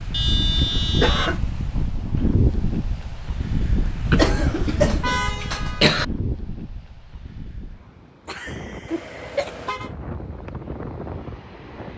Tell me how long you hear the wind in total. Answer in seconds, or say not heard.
12 s.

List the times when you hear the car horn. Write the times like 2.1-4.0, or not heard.
0.1-1.4, 5.0-5.9, 8.8-9.9.